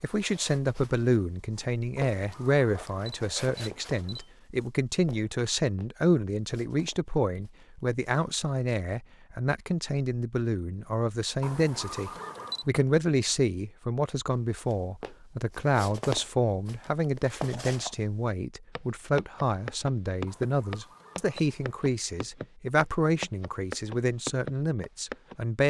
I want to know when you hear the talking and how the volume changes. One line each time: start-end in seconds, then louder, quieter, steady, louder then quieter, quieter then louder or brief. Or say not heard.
0.0-25.6 steady.